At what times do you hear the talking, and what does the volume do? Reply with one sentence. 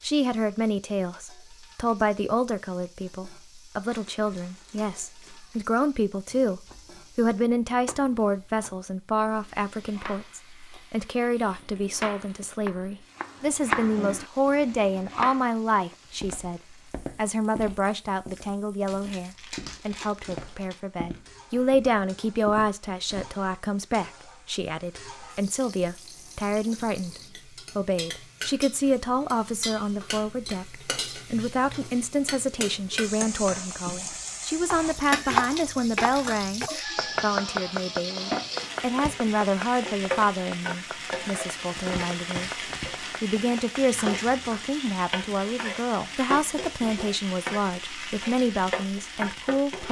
You can hear the talking from 0.0 to 49.8 s, at a steady volume.